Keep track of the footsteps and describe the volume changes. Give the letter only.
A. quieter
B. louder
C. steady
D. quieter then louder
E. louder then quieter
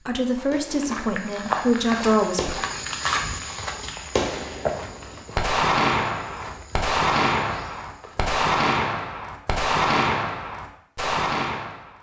A.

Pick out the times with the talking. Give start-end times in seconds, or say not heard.
0.0-2.5.